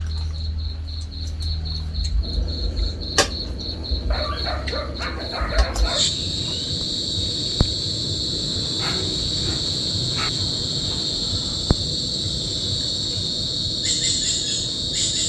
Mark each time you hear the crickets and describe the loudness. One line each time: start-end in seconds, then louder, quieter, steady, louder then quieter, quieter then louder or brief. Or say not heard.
0.0-15.2 louder.